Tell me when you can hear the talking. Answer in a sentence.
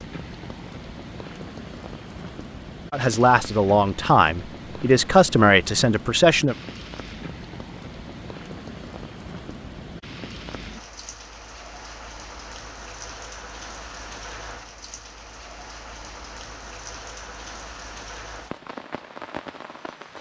You can hear the talking from 2.9 to 6.5 s.